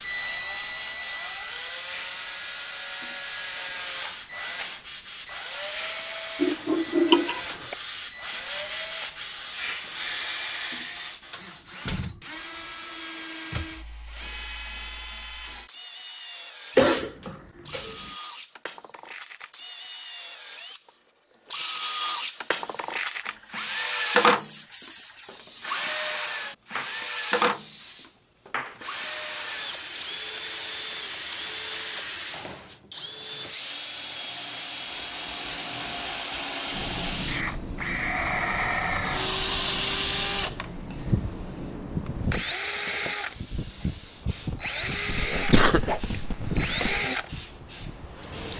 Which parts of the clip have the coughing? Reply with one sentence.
The coughing can be heard from 6.4 to 7.8 s, from 16.8 to 18.1 s and from 45.1 to 47.0 s.